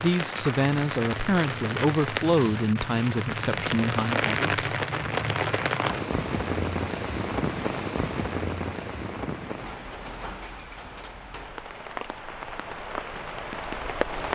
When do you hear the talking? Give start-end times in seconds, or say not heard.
0.0-4.5.